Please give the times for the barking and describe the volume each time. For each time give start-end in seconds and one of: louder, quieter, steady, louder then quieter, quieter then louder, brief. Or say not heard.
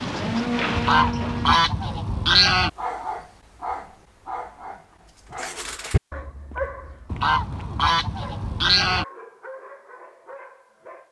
2.8-11.0 quieter.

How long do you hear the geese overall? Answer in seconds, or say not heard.
4 s.